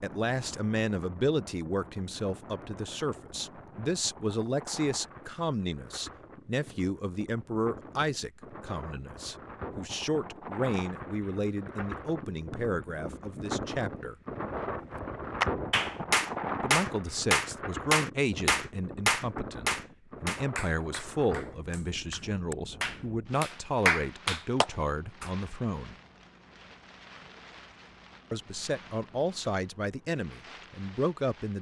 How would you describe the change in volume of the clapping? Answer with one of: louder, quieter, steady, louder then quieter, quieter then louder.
quieter then louder.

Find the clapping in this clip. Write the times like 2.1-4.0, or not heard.
15.4-25.3.